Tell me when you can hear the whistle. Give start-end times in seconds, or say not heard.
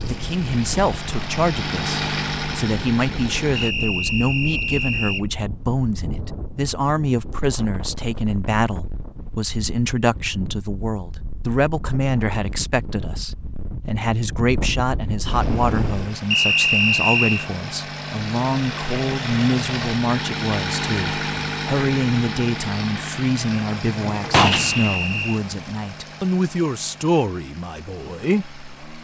3.5-5.2, 16.3-17.5, 24.6-25.4.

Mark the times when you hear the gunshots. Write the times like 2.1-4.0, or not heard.
23.9-25.0.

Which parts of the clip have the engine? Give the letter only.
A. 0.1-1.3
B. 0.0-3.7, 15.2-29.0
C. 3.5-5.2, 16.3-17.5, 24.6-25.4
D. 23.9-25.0
B.